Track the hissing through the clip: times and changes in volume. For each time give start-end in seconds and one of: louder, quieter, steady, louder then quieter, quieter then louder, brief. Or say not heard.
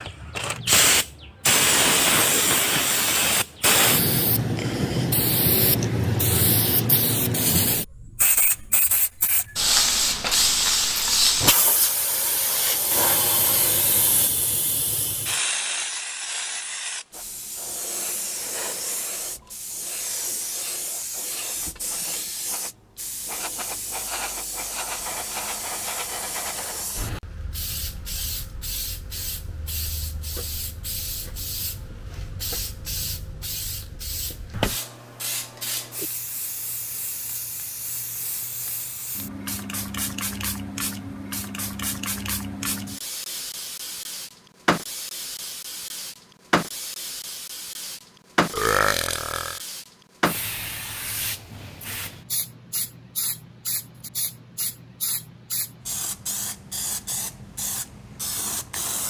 0.0-59.0 quieter.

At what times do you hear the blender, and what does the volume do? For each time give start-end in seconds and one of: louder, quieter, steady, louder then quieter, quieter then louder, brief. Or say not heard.
not heard.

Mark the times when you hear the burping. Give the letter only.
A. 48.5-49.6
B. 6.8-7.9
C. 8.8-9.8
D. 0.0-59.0
A.